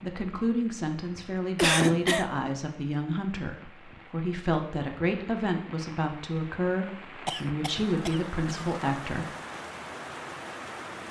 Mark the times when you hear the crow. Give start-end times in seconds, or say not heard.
not heard.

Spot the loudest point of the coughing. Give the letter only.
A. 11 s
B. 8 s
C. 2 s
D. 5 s
C.